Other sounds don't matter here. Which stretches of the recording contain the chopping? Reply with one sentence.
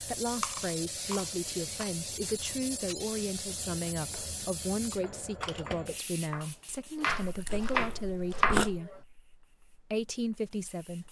The chopping can be heard from 3.5 to 9.0 s.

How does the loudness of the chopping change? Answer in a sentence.
The volume of the chopping goes up.